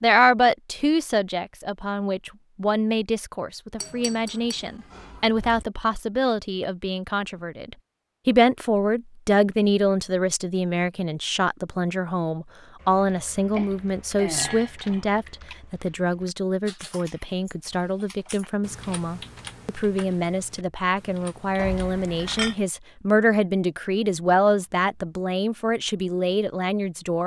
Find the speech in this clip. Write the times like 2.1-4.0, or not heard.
0.0-27.2.